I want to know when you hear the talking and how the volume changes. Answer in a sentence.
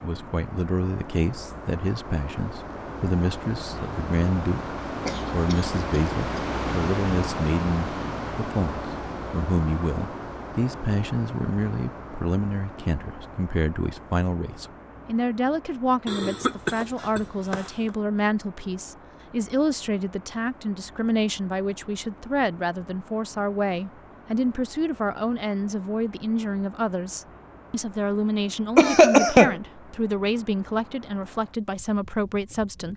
You can hear the talking from 0.0 to 32.9 s, at a steady volume.